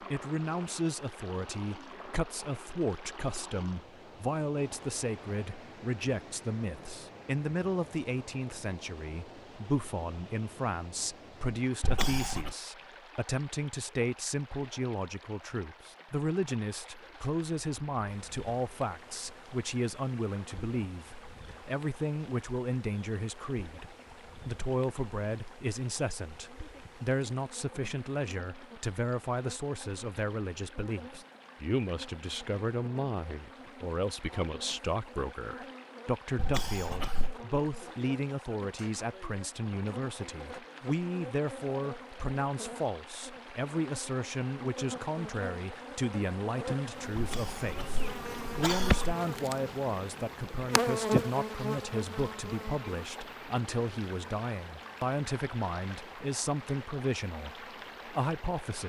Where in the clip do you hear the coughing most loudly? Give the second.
49 s.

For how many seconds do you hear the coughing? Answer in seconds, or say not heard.
4 s.